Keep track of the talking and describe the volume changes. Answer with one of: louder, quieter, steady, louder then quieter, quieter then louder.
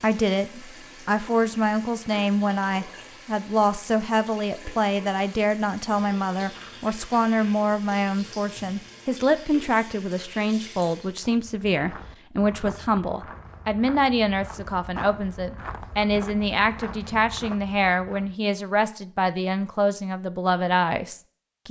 steady.